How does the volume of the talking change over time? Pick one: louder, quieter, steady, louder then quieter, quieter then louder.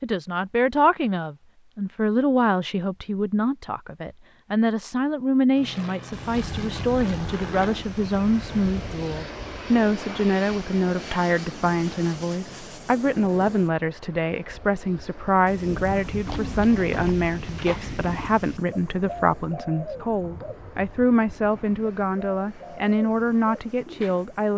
steady.